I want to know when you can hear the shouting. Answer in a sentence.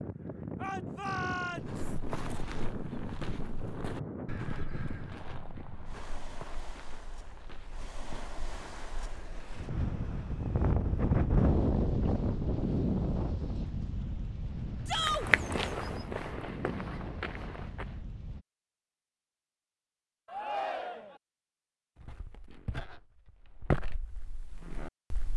The shouting can be heard from 0.6 to 1.9 s, from 14.8 to 15.2 s and from 20.2 to 21.2 s.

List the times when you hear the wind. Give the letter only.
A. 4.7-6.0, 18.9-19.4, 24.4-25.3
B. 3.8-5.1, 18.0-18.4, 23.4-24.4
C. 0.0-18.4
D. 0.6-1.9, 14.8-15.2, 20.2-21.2
C.